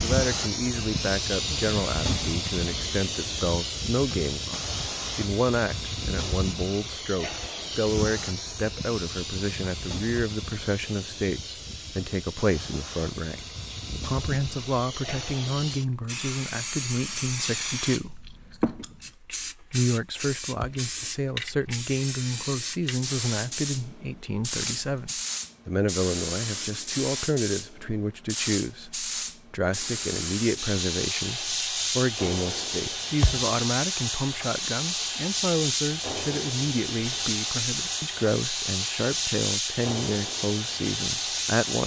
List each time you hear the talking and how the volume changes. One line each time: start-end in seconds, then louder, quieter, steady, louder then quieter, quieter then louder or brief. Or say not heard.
0.0-13.4 steady
14.1-41.8 steady.